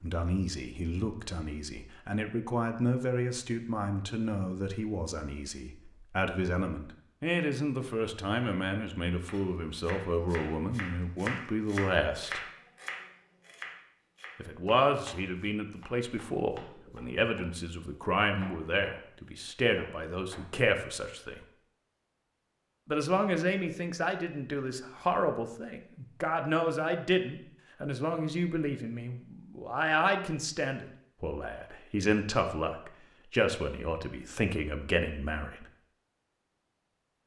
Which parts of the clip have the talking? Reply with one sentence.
The talking can be heard from 0.0 to 12.4 s, from 14.3 to 21.4 s and from 22.9 to 35.6 s.